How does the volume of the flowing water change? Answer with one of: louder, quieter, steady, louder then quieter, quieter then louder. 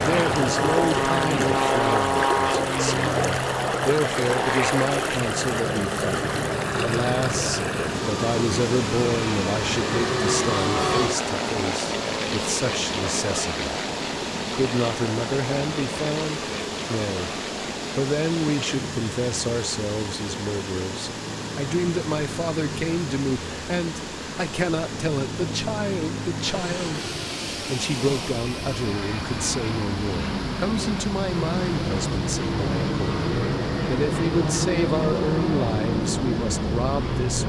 quieter.